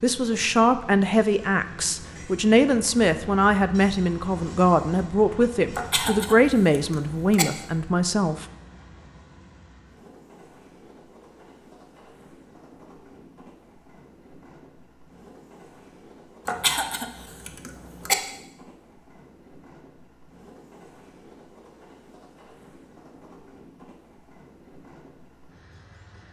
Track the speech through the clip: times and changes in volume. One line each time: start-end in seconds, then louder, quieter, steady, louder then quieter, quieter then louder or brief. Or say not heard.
0.0-8.4 steady.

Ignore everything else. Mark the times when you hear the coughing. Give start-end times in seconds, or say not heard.
5.8-7.5, 16.4-18.1.